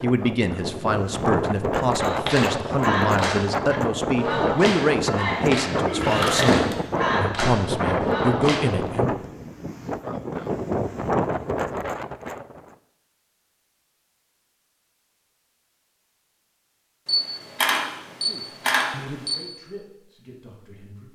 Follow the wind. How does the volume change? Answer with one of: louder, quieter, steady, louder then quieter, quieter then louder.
steady.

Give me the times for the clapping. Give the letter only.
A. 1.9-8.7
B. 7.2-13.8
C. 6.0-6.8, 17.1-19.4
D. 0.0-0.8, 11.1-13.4
A.